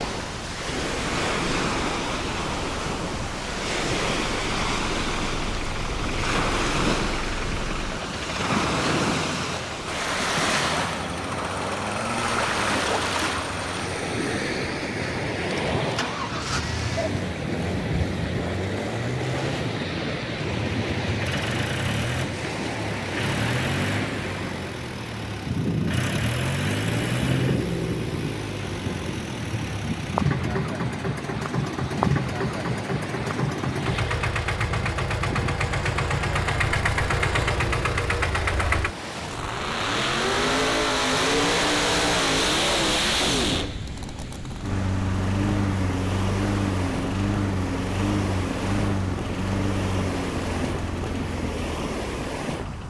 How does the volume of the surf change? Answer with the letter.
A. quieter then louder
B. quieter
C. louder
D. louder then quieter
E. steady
B.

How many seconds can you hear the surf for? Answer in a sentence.
You can hear the surf for 53 seconds altogether.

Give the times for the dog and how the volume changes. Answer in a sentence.
You can't hear the dog here.